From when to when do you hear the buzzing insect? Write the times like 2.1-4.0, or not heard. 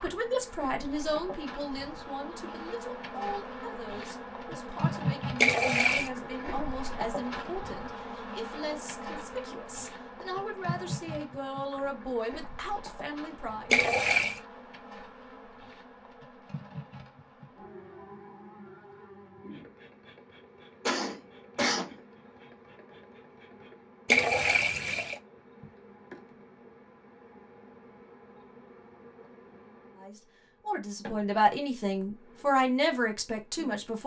0.0-34.0.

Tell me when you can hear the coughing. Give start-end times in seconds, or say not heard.
20.9-21.9.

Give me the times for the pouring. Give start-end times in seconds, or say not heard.
5.4-6.1, 13.7-14.4, 24.1-25.2.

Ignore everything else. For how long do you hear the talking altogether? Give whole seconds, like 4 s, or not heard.
18 s.